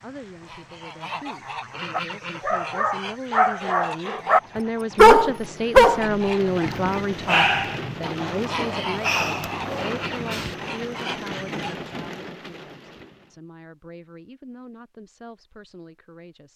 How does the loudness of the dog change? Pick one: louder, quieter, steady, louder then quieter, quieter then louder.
louder then quieter.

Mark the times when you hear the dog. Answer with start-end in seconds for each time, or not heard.
1.9-10.6.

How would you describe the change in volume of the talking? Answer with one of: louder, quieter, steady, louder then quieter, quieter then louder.
louder then quieter.